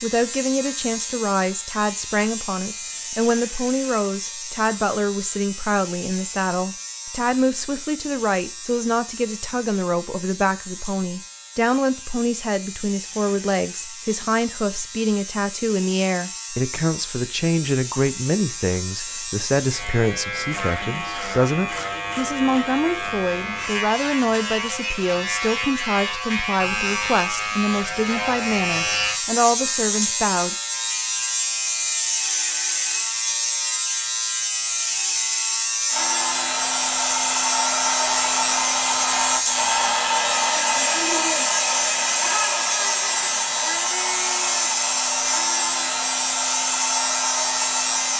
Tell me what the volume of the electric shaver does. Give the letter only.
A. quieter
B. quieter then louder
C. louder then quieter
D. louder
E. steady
D.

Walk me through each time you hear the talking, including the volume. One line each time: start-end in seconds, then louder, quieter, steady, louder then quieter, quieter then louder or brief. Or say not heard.
0.0-30.6 steady.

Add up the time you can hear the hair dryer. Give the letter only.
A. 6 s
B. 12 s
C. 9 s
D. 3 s
B.